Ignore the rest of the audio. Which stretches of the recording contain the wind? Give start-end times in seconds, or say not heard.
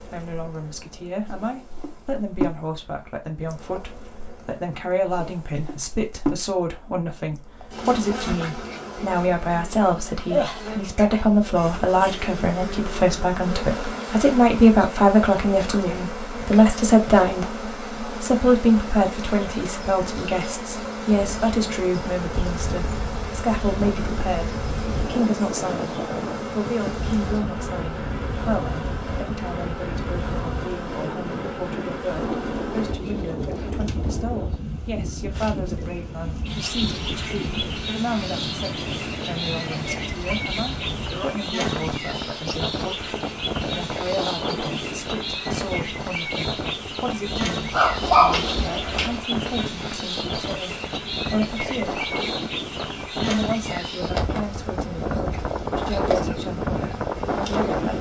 21.1-57.9.